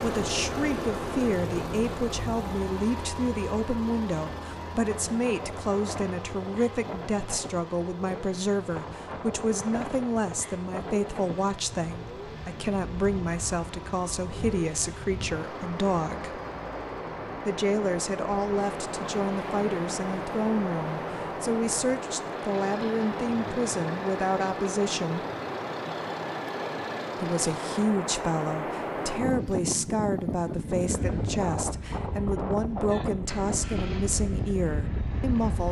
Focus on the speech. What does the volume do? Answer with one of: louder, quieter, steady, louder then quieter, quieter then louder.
steady.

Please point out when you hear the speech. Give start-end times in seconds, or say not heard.
0.0-16.4, 17.4-25.2, 27.2-35.6.